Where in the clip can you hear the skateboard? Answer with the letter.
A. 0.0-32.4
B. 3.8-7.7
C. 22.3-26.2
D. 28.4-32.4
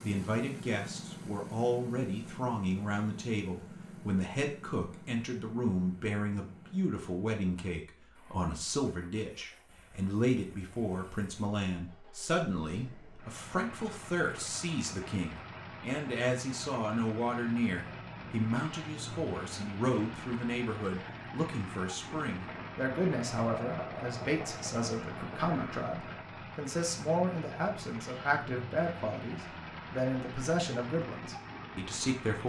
C.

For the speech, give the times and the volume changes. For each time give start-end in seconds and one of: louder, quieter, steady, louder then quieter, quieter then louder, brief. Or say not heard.
0.0-32.4 steady.